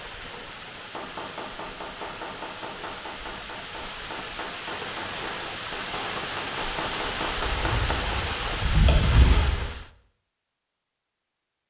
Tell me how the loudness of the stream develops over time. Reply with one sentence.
The loudness of the stream goes up.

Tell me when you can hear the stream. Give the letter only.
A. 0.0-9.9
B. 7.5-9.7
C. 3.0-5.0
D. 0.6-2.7
A.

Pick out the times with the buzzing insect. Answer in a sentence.
You can hear the buzzing insect from 7.5 to 9.7 s.